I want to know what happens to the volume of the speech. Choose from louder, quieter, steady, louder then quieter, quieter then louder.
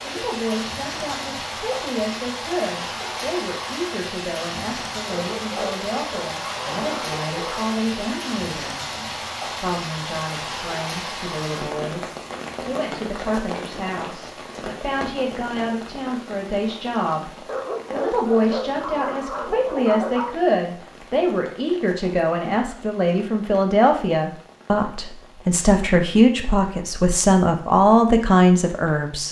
louder.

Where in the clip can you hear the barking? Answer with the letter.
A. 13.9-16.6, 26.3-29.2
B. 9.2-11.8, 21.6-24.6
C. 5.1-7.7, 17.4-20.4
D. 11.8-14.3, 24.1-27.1
C.